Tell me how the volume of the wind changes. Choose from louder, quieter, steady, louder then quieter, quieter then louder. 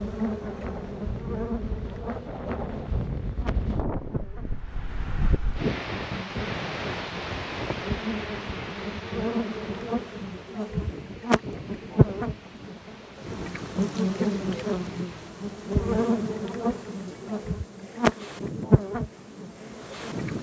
quieter.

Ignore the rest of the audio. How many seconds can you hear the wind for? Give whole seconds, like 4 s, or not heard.
20 s.